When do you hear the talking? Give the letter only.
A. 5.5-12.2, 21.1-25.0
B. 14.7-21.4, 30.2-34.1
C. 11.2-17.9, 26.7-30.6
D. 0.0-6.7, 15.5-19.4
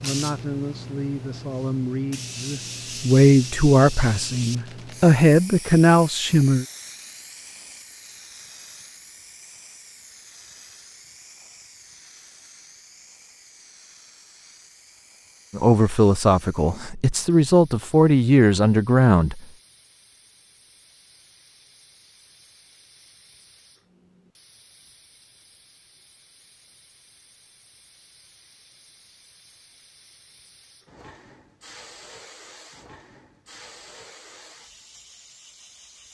D.